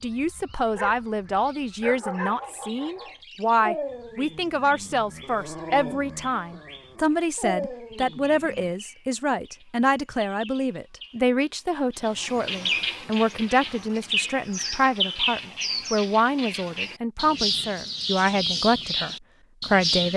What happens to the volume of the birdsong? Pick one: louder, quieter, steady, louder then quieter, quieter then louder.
louder.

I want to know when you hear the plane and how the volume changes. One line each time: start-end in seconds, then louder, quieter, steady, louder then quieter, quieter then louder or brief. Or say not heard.
not heard.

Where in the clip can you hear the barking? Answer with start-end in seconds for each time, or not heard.
0.8-8.7.